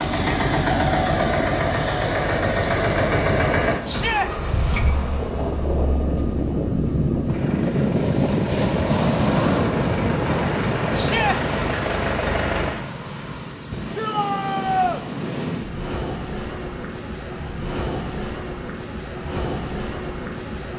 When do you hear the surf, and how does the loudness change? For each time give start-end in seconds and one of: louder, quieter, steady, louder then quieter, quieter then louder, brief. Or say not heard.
0.1-20.7 louder then quieter.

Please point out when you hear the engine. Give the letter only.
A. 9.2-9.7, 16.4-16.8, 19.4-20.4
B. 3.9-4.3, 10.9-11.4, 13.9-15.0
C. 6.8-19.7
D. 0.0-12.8
D.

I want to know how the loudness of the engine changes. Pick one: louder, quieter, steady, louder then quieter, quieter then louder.
quieter then louder.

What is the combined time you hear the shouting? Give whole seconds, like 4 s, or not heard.
2 s.